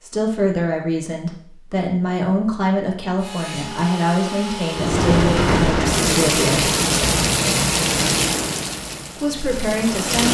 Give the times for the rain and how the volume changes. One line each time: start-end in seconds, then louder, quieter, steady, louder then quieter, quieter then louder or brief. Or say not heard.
4.7-10.2 quieter.